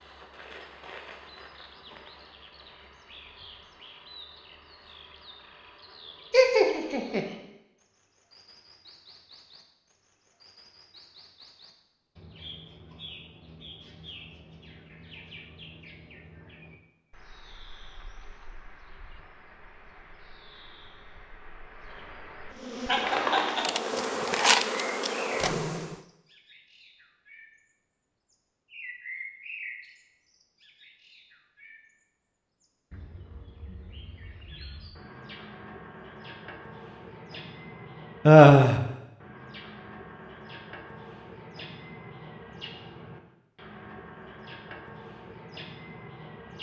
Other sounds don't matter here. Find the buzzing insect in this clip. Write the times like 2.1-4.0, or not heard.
22.6-25.9.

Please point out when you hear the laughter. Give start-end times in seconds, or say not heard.
6.3-7.2, 22.9-23.6, 38.2-38.8.